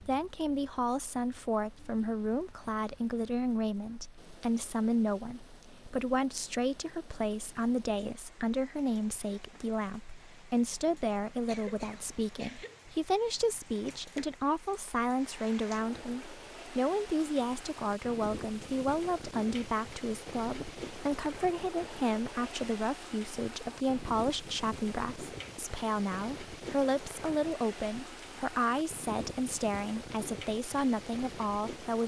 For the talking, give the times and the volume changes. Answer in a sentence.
The talking can be heard from 0.0 to 32.0 s, at a steady volume.